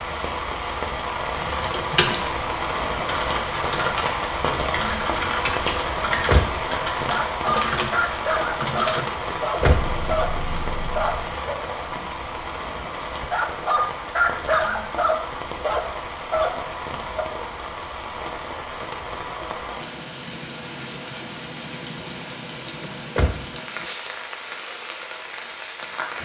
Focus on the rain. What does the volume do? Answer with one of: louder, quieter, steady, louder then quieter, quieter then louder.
quieter.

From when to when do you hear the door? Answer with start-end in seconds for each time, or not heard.
6.0-6.5, 9.3-9.8, 22.8-23.9.